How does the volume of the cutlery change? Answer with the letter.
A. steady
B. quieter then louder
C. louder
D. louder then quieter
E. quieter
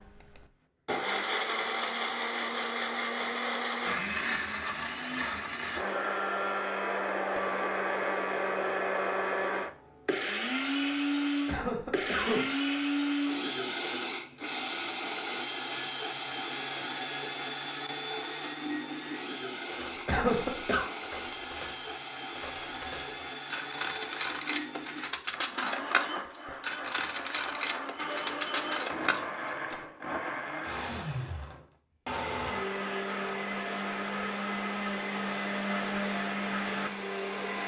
C.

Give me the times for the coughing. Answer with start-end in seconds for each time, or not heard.
11.4-12.6, 20.1-20.9.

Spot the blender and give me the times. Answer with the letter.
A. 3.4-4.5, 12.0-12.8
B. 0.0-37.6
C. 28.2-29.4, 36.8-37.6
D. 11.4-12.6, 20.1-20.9
B.